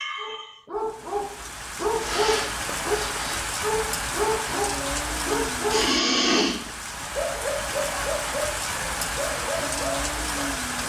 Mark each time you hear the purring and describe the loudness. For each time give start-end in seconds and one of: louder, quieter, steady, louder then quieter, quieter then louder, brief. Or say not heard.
not heard.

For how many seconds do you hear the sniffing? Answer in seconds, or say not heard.
2 s.